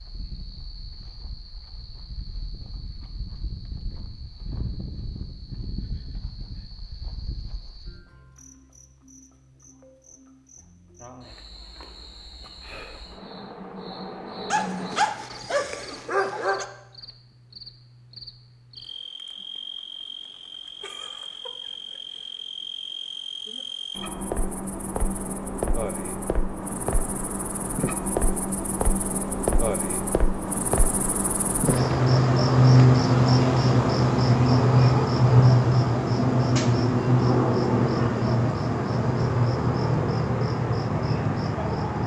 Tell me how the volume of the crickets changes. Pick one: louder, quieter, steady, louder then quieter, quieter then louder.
louder.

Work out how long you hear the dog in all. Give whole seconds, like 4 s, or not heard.
2 s.